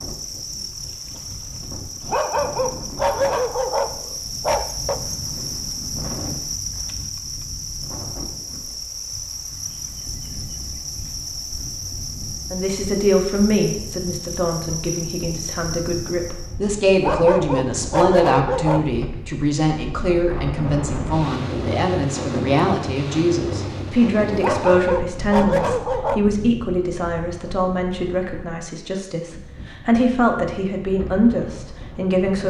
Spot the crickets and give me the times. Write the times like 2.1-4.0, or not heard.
0.0-16.6.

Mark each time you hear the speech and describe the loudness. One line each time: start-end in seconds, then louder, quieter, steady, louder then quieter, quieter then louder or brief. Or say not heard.
12.5-32.4 steady.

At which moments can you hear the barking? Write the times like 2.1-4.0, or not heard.
2.0-5.0, 16.9-19.1, 24.4-26.2.